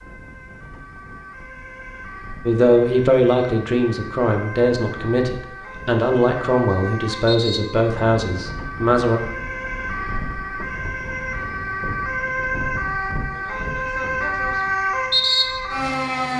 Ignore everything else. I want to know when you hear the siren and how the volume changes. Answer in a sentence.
The siren can be heard from 0.0 to 16.3 s, getting louder.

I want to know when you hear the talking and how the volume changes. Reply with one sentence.
You can hear the talking from 2.5 to 9.2 s, at a steady volume.